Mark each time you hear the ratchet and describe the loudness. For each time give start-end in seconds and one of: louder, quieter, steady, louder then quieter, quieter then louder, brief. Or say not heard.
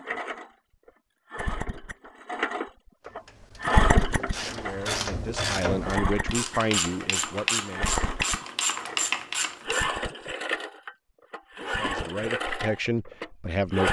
3.0-10.0 louder.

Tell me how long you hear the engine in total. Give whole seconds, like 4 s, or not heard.
14 s.